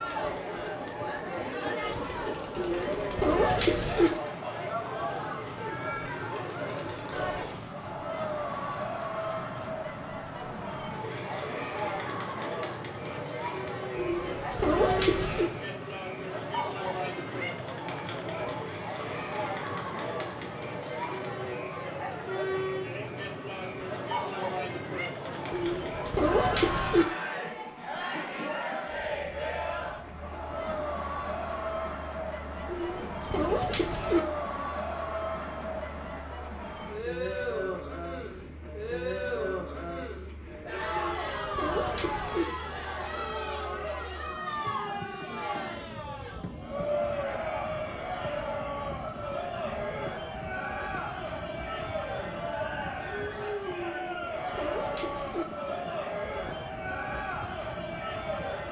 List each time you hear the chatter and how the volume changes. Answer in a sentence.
The chatter can be heard from 0.0 to 58.6 s, at a steady volume.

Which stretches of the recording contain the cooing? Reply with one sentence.
You can hear the cooing from 2.5 to 4.1 s, from 13.9 to 15.5 s, from 25.5 to 27.1 s, from 32.6 to 34.2 s, from 40.9 to 42.5 s and from 53.9 to 55.5 s.